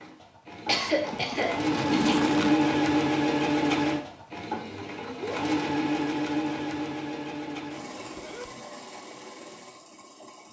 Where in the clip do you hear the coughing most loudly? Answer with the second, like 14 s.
1 s.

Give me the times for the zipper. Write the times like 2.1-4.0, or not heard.
0.7-2.6, 8.0-8.5.